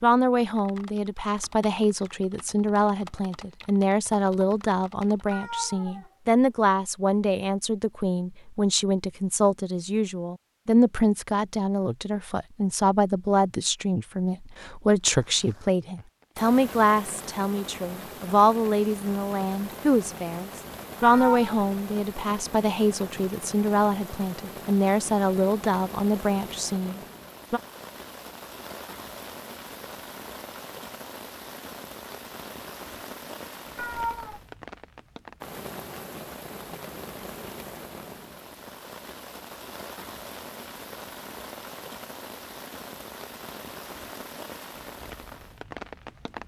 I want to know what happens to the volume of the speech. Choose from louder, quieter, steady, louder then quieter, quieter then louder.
steady.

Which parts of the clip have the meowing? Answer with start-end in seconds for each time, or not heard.
5.3-6.2, 21.0-21.6, 33.8-34.4.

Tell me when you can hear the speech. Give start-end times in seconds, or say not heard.
0.0-27.6.